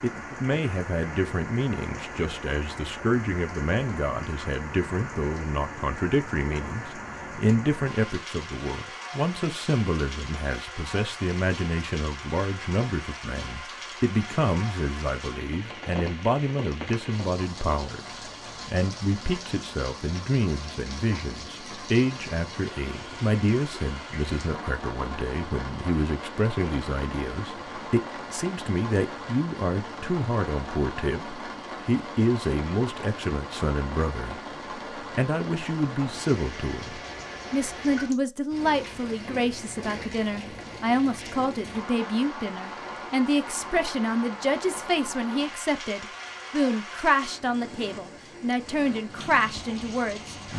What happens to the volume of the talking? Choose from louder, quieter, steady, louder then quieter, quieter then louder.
steady.